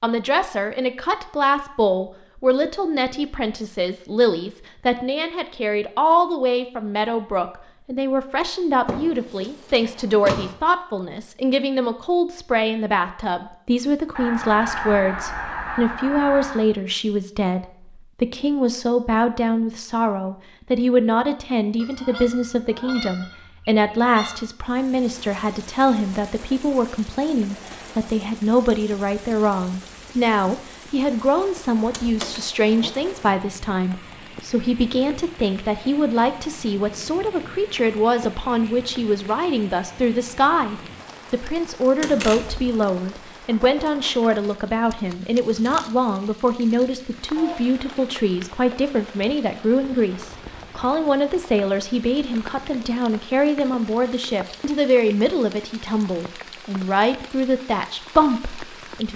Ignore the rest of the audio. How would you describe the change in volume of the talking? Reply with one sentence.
The loudness of the talking stays about the same.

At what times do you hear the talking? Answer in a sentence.
The talking can be heard from 0.0 to 59.1 s.